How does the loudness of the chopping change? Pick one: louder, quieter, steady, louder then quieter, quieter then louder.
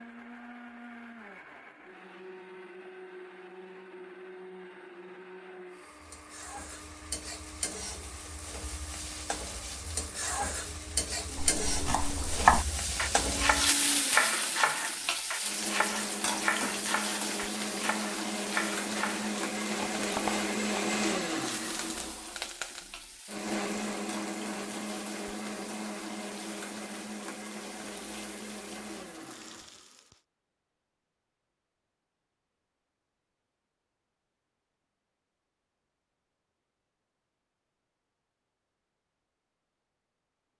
quieter.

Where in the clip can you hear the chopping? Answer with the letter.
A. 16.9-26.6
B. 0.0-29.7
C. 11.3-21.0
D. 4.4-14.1
C.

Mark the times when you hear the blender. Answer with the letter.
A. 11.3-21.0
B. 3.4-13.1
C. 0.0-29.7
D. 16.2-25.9
C.